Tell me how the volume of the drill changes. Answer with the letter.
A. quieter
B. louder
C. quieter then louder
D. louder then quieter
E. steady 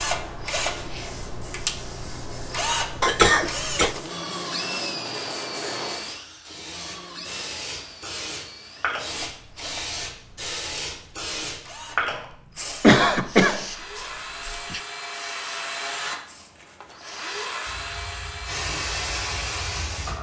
C.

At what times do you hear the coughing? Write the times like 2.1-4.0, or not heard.
3.0-4.0, 12.8-14.8.